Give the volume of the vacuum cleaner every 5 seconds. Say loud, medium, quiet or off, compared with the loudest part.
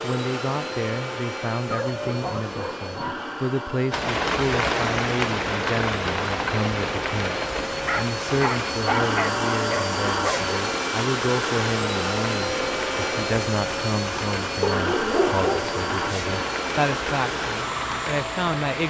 medium, loud, loud, loud.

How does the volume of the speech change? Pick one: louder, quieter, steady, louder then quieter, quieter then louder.
steady.